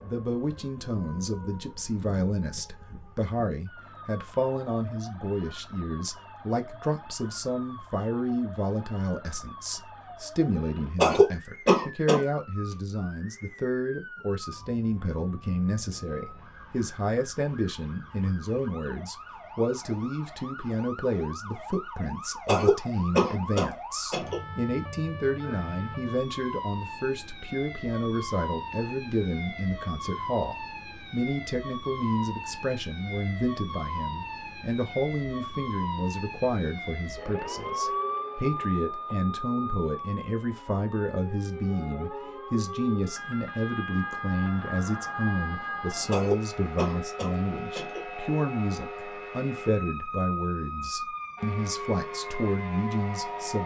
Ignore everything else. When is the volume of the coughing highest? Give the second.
11 s.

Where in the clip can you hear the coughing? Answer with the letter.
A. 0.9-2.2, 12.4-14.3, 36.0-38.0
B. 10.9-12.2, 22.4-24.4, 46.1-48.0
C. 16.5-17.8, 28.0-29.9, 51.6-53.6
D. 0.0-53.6
B.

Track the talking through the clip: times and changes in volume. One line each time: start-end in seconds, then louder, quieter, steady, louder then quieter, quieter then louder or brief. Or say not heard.
0.0-53.6 steady.